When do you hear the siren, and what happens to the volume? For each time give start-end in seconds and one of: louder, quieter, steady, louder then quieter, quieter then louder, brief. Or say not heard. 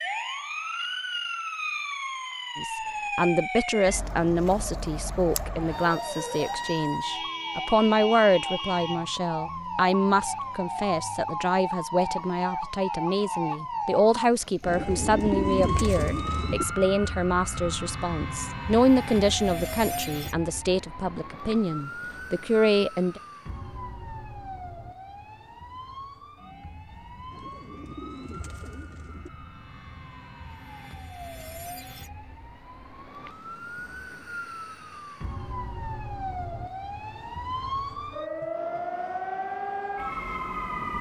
0.0-40.9 quieter then louder.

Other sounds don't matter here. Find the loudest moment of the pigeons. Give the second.
15 s.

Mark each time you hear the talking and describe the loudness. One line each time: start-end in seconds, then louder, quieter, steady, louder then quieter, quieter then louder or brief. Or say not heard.
2.5-23.2 steady.